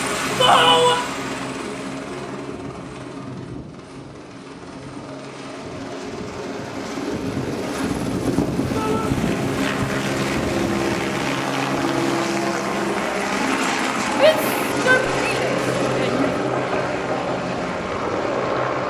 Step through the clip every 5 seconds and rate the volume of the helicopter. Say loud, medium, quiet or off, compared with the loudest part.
medium, loud, loud, loud.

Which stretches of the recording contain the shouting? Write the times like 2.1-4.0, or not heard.
0.3-1.1, 8.7-9.2, 14.1-16.4.